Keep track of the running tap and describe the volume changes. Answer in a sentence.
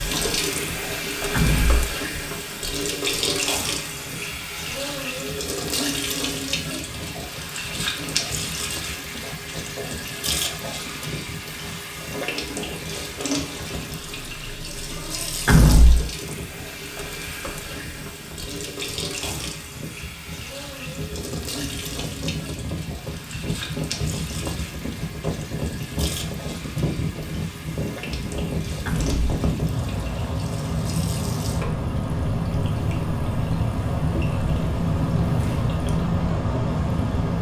The volume of the running tap goes down.